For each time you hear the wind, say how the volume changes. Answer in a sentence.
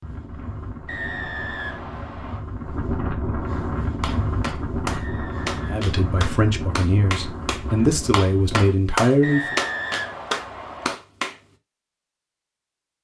You can hear the wind from 0.0 to 8.8 s, getting louder then quieter.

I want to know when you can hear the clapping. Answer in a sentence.
The clapping can be heard from 4.0 to 11.4 s.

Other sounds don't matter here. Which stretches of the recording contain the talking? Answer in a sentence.
You can hear the talking from 5.7 to 9.6 s.